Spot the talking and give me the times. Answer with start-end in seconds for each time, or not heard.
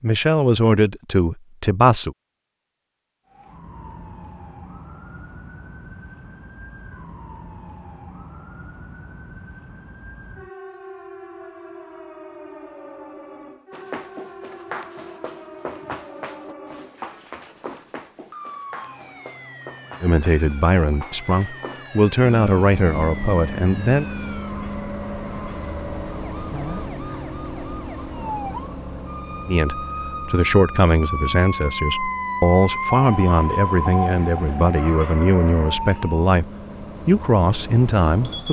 0.0-2.1, 20.0-24.1, 29.4-38.4.